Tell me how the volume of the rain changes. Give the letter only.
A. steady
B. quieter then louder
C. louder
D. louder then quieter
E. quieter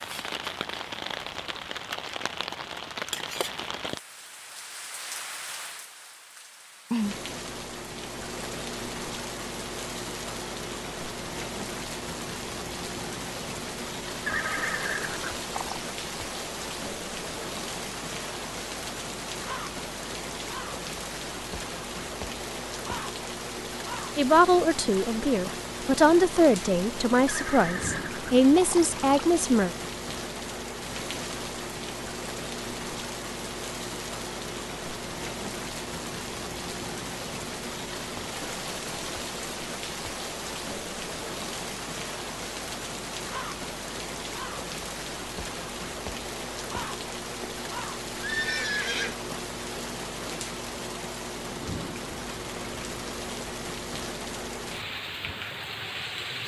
A.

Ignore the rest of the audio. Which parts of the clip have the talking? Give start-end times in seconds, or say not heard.
24.1-29.7.